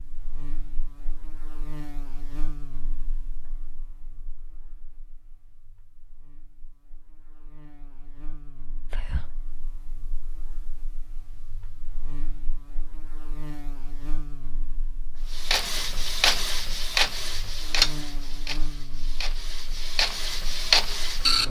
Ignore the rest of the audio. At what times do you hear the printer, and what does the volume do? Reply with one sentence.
The printer can be heard from 15.3 to 21.4 s, getting quieter then louder.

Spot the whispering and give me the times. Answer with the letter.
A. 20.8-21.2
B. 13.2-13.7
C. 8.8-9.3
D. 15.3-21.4
C.